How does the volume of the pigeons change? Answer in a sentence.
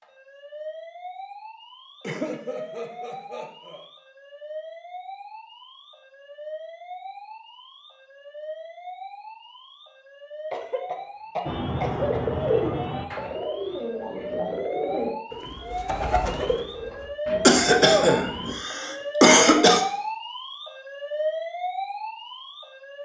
The loudness of the pigeons goes down.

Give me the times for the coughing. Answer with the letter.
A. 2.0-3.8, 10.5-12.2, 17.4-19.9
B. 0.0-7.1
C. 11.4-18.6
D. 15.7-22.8
A.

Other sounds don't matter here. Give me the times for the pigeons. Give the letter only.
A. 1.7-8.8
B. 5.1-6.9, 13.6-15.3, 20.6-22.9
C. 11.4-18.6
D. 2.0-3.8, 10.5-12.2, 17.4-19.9
C.